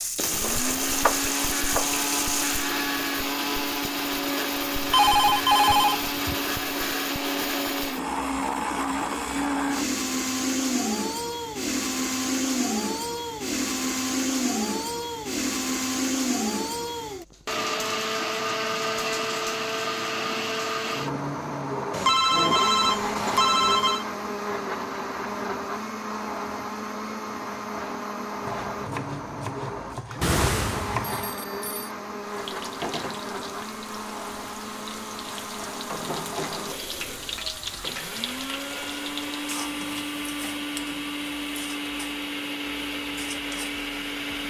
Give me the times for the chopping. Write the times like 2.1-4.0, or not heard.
0.4-1.9, 28.4-31.4.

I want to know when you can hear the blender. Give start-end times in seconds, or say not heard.
0.1-44.4.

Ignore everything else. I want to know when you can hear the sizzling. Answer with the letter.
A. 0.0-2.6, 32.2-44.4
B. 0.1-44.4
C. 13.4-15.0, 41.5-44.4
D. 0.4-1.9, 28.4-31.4
A.